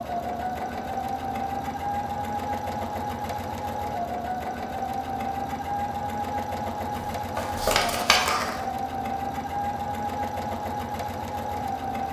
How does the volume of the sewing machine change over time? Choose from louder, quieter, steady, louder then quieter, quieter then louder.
steady.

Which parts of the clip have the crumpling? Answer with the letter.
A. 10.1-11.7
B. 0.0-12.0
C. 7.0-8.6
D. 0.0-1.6
C.